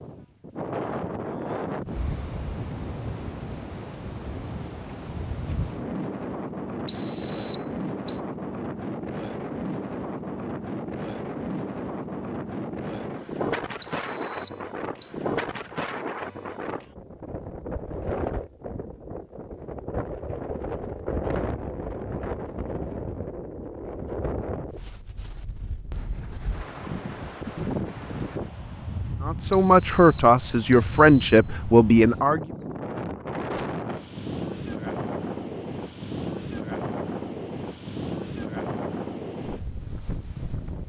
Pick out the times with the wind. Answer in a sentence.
You can hear the wind from 0.0 to 40.8 s.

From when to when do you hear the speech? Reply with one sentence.
You can hear the speech from 29.2 to 32.4 s.